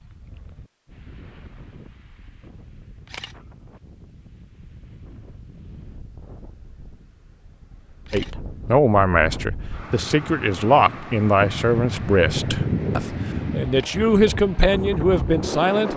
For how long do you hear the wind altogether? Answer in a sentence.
The wind can be heard for 16 seconds in total.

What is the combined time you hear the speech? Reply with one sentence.
You can hear the speech for 8 seconds altogether.